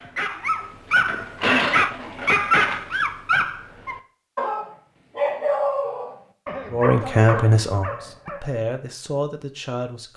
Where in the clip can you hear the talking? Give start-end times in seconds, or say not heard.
6.7-10.1.